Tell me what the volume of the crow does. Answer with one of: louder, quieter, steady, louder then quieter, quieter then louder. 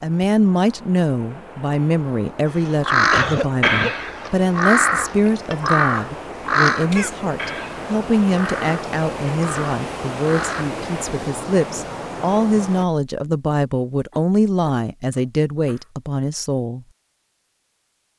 quieter.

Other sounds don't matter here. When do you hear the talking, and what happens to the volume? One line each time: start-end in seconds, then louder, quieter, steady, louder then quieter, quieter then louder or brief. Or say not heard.
0.0-16.9 steady.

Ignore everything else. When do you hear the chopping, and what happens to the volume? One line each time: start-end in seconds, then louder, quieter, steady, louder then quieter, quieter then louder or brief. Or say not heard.
not heard.